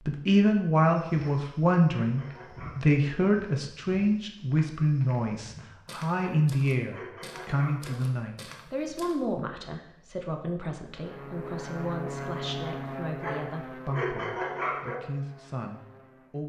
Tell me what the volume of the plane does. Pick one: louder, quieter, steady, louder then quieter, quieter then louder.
quieter.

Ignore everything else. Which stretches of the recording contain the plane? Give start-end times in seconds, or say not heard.
10.9-16.4.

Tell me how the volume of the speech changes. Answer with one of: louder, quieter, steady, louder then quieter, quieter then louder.
quieter.